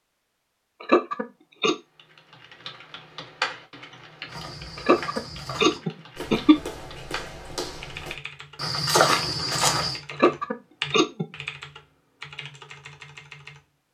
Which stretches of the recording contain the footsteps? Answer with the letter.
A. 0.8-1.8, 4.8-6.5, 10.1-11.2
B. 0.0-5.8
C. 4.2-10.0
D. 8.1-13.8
C.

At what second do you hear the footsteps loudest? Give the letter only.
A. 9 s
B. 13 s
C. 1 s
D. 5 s
A.